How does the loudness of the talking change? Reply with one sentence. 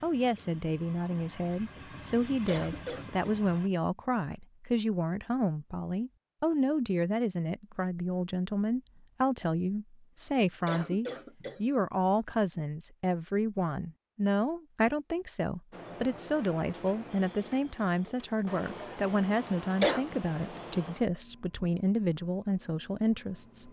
The loudness of the talking stays about the same.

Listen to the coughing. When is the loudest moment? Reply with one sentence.
The volume of the coughing peaks at 20 seconds.